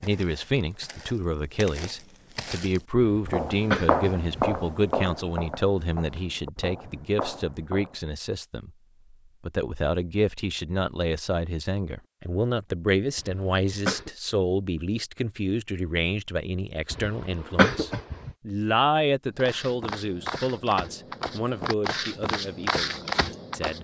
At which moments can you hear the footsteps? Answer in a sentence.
You can hear the footsteps from 0.0 to 8.0 s and from 19.4 to 23.7 s.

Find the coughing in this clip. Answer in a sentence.
The coughing can be heard from 3.0 to 4.7 s, from 13.2 to 14.1 s and from 16.9 to 18.3 s.